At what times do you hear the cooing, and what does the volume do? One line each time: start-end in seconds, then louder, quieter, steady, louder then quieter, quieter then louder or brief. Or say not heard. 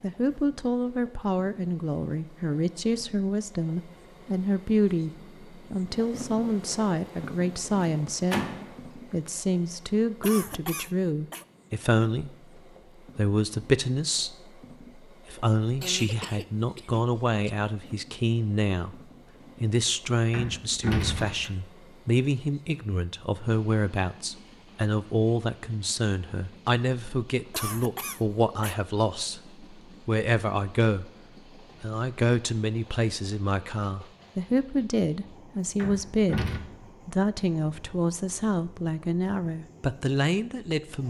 not heard.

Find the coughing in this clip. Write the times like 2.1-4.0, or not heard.
10.2-11.4, 15.8-17.5, 27.5-28.8.